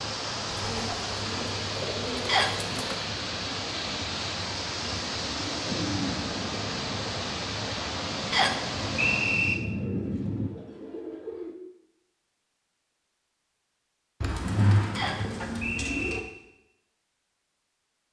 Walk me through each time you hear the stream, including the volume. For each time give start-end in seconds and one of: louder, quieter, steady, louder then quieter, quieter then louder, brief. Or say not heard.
0.0-9.7 steady.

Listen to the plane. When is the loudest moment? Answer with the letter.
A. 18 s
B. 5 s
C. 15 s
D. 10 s
D.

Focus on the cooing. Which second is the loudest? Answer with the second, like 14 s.
15 s.